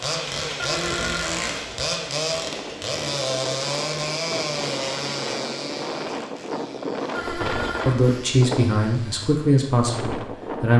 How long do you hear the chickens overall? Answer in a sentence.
The chickens can't be heard in this clip.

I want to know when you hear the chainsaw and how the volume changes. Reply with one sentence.
You can hear the chainsaw from 0.0 to 9.3 s, getting quieter.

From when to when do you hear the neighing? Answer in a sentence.
The neighing can be heard from 0.6 to 1.9 s and from 7.2 to 8.3 s.